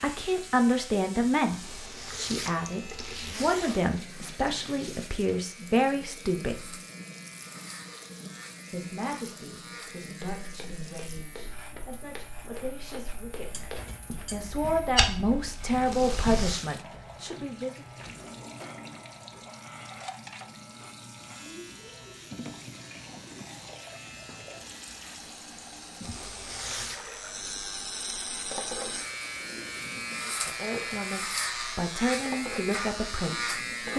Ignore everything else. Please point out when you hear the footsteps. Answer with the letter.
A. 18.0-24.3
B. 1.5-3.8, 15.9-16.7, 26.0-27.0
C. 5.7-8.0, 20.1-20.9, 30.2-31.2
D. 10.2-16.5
D.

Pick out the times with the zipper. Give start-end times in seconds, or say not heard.
1.5-3.8, 15.9-16.7, 26.0-27.0.